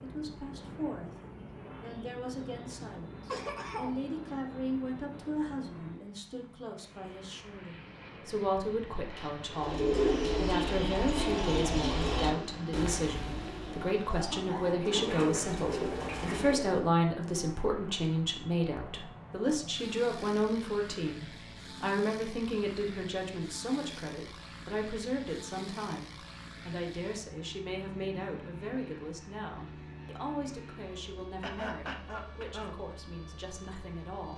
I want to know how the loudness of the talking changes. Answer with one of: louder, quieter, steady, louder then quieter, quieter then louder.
louder then quieter.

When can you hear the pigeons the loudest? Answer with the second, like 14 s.
10 s.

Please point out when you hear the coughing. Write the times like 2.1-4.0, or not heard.
2.8-4.0, 14.1-15.1, 31.4-32.8.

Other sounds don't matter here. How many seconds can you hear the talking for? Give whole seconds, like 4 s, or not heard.
34 s.